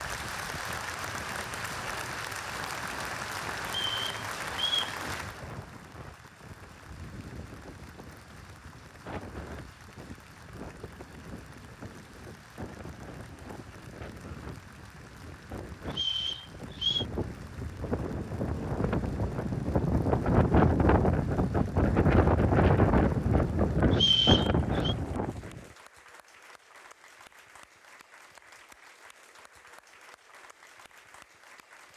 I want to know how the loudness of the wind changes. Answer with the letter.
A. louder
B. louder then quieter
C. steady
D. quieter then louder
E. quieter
A.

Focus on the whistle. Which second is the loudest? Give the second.
24 s.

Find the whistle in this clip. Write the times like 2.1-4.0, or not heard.
3.6-5.0, 15.9-17.1, 23.9-24.9.